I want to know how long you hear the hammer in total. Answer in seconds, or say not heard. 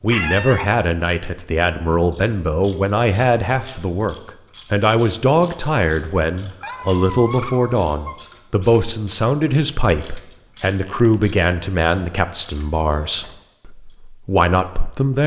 not heard.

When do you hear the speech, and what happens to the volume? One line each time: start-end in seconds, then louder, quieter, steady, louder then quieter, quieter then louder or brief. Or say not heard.
0.0-15.2 steady.